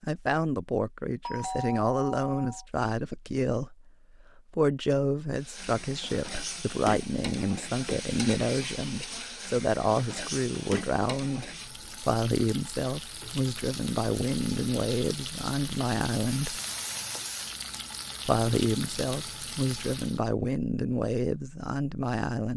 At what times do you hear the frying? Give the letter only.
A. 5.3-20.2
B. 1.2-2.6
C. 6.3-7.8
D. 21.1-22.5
A.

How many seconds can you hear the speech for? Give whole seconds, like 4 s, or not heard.
21 s.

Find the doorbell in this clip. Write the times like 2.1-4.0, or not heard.
1.2-2.6.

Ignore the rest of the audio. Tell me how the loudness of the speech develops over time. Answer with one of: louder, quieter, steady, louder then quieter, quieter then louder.
steady.